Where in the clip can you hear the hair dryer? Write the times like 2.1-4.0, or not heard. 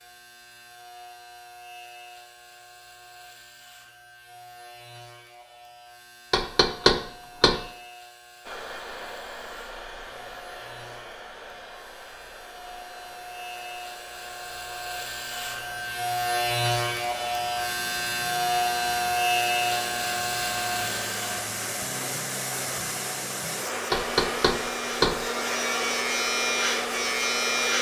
8.4-27.7.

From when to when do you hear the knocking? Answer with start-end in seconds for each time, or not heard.
6.3-7.6, 23.9-25.2.